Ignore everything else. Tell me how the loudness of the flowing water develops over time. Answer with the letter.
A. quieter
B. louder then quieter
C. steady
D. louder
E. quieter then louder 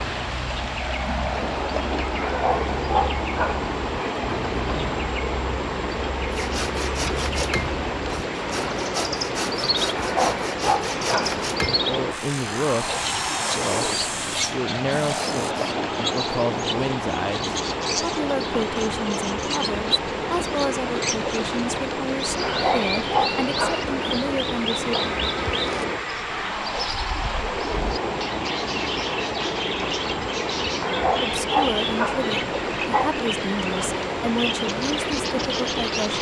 C.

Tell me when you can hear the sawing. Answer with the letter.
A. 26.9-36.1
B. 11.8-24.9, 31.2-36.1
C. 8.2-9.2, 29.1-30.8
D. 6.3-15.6
D.